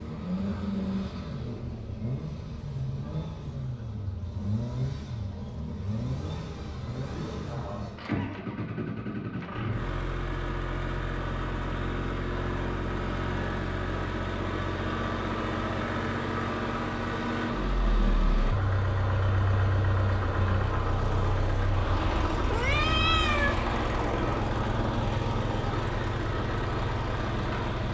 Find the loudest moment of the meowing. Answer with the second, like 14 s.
23 s.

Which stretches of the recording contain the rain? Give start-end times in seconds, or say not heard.
not heard.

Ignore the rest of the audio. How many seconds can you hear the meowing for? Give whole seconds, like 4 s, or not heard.
2 s.